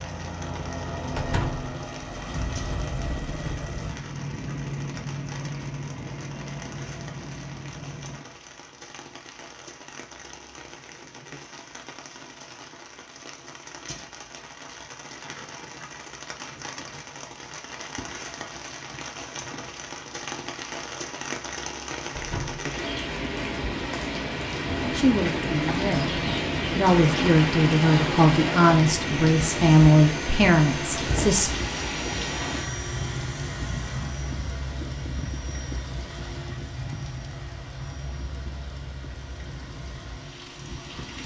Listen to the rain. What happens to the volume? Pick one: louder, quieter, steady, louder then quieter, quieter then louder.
louder then quieter.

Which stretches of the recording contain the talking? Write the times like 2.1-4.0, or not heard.
24.9-31.6.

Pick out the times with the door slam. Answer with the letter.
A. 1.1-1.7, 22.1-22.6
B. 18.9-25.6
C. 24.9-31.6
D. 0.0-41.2
A.